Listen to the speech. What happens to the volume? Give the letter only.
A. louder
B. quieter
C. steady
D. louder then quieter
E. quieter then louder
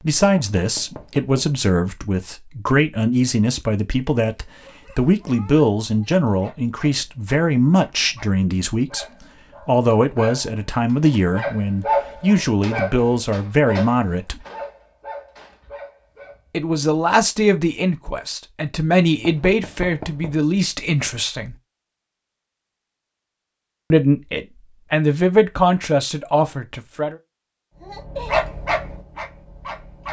C.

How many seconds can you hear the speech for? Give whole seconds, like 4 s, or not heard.
23 s.